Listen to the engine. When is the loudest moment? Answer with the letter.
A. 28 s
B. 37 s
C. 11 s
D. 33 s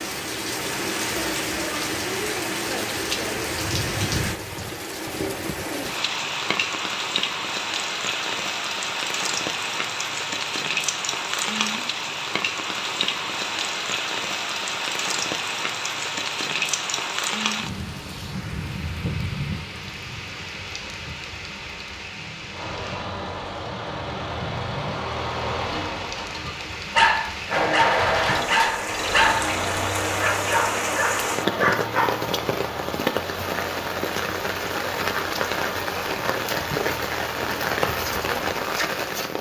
A.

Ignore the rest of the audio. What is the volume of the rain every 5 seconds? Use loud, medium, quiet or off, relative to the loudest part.
loud, loud, loud, loud, medium, medium, loud, loud.